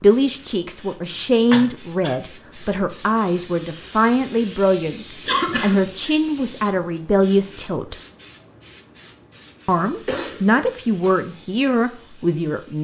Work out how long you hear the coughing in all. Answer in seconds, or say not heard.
3 s.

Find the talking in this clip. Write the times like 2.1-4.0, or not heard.
0.0-8.0, 9.7-12.7.